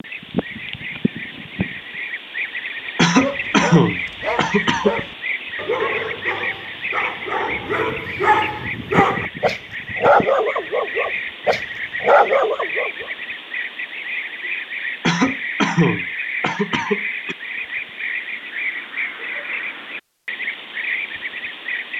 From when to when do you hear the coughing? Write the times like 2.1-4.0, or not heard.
3.0-5.0, 15.0-17.4.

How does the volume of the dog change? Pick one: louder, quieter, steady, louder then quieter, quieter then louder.
louder.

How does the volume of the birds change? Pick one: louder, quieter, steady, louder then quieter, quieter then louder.
steady.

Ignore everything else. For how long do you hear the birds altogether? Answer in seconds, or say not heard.
22 s.